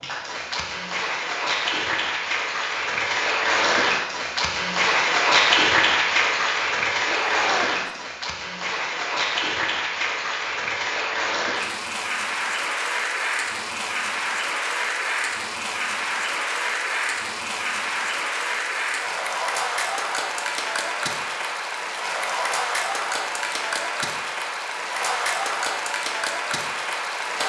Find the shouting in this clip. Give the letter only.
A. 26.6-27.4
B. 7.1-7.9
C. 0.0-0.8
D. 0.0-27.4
B.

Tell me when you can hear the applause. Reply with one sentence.
You can hear the applause from 0.0 to 27.4 s.